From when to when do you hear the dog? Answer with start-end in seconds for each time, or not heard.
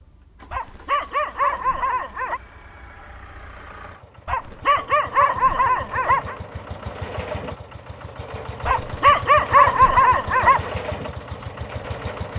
0.5-2.4, 4.2-6.3, 8.7-10.7.